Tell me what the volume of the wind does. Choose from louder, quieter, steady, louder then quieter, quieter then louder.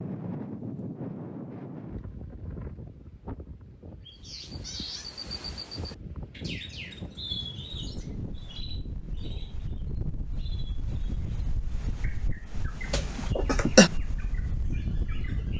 quieter then louder.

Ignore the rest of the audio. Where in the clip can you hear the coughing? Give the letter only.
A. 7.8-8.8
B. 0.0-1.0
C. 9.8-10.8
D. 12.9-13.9
D.